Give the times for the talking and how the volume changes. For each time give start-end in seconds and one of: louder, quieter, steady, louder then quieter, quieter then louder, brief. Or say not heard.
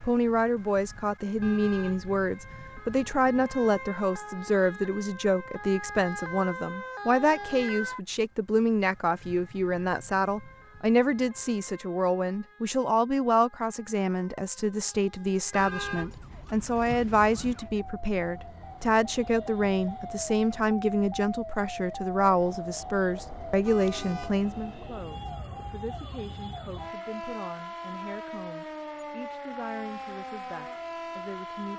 0.0-31.7 quieter.